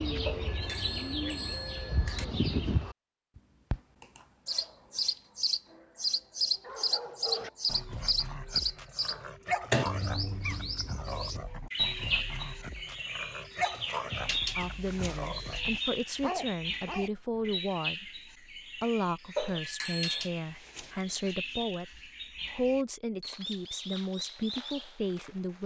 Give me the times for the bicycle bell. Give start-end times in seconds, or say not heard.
0.2-2.2, 19.4-20.3.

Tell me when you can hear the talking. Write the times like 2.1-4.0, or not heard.
14.6-25.6.